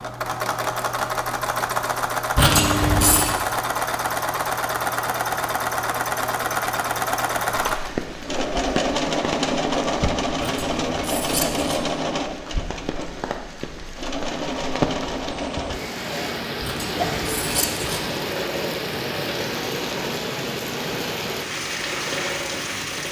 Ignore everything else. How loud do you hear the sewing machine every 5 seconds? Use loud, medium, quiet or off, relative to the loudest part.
loud, loud, loud, medium, medium.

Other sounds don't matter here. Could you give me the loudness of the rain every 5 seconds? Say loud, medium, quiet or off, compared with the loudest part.
off, loud, loud, loud, loud.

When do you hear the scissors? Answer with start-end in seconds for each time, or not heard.
2.4-3.4, 10.4-11.8, 16.6-18.1.